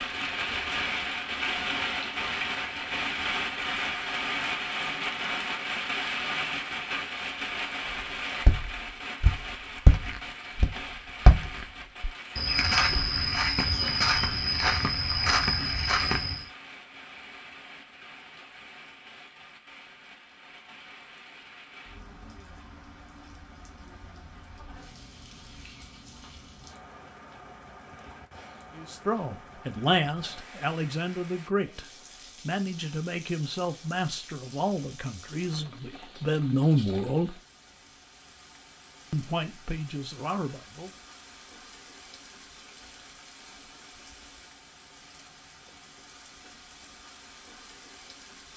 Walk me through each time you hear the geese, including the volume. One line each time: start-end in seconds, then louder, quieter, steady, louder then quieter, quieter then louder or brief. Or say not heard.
not heard.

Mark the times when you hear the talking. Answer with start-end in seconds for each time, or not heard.
28.8-37.4, 39.1-40.9.